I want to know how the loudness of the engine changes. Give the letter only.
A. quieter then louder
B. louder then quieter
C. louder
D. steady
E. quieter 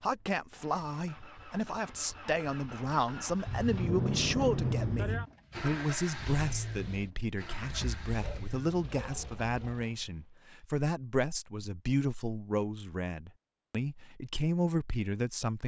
B.